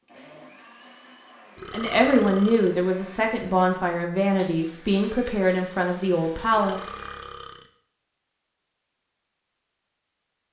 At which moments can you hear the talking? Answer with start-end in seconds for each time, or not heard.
1.7-6.8.